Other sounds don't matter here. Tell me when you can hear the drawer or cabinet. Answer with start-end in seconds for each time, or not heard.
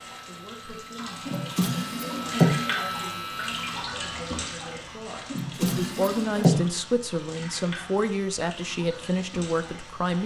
1.2-2.5, 5.3-6.6.